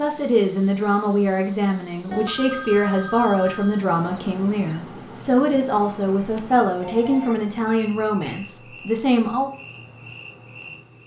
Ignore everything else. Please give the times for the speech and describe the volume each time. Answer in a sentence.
You can hear the speech from 0.0 to 9.5 s, at a steady volume.